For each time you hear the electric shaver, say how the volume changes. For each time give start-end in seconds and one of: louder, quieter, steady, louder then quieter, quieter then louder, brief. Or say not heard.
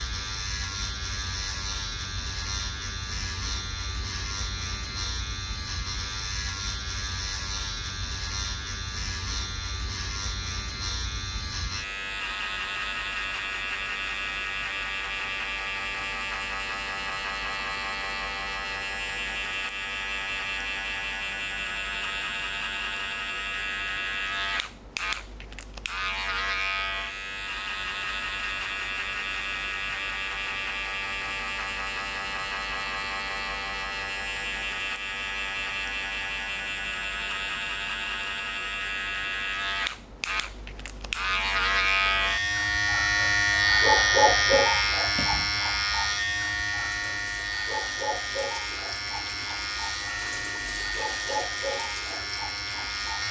0.0-53.2 louder.